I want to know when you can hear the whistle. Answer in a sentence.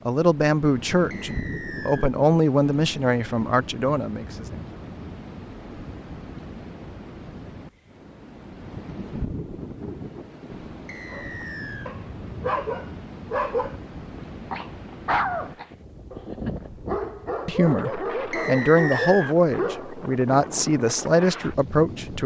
You can hear the whistle from 1.1 to 2.1 s, from 10.8 to 11.9 s and from 18.3 to 19.4 s.